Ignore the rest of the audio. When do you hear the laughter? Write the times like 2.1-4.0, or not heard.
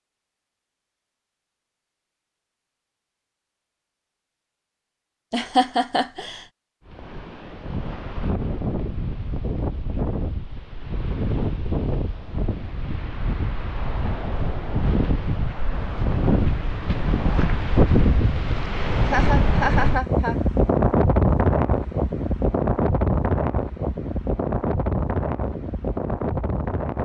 5.3-6.5, 19.0-20.4.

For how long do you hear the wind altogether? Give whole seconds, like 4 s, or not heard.
20 s.